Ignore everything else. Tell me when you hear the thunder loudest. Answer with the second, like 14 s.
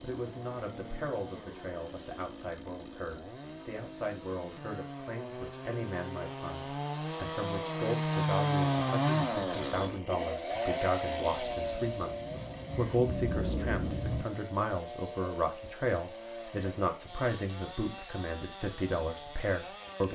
13 s.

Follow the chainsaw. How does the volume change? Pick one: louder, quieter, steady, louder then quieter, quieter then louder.
louder then quieter.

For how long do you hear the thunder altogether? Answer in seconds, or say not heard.
3 s.